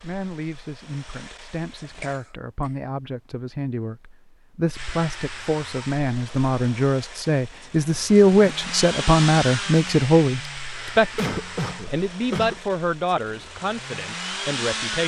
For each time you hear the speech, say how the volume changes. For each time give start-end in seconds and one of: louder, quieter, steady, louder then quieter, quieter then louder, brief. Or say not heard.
0.0-15.0 louder then quieter.